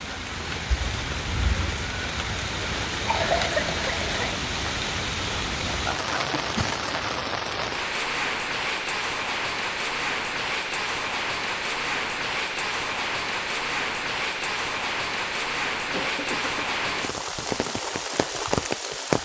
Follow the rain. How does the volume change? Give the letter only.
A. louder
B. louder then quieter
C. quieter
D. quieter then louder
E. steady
E.